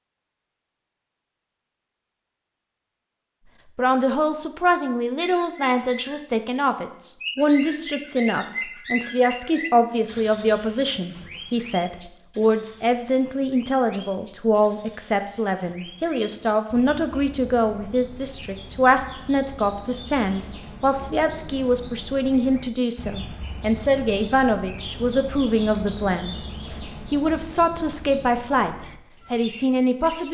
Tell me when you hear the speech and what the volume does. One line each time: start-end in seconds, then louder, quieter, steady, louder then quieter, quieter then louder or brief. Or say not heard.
3.8-30.2 steady.